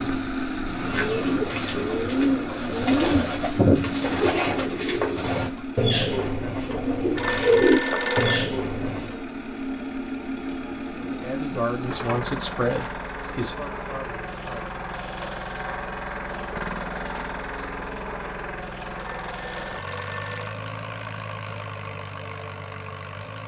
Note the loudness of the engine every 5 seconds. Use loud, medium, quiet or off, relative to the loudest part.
loud, loud, loud, loud, medium.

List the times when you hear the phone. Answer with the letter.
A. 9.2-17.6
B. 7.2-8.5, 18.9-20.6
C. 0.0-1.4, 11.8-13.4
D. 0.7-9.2
B.